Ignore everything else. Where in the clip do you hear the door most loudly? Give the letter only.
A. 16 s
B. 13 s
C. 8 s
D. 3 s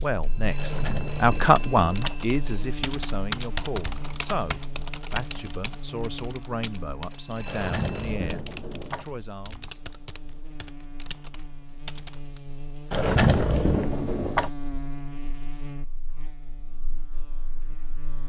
B.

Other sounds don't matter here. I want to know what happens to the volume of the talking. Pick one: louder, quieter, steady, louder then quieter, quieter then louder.
quieter.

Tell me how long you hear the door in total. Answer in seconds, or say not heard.
5 s.